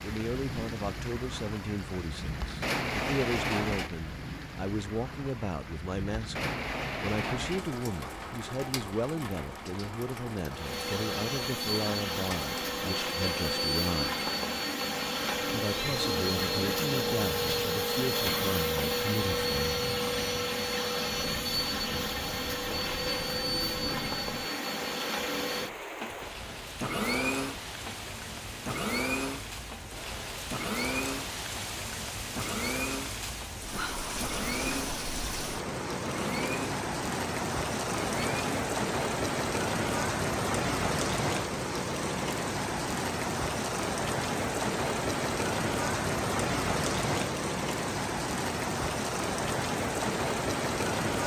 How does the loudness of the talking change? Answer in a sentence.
The loudness of the talking stays about the same.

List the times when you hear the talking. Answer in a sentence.
You can hear the talking from 0.0 to 14.2 s and from 15.4 to 19.9 s.